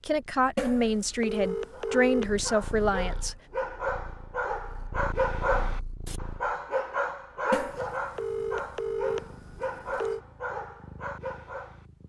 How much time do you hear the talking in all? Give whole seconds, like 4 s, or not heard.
3 s.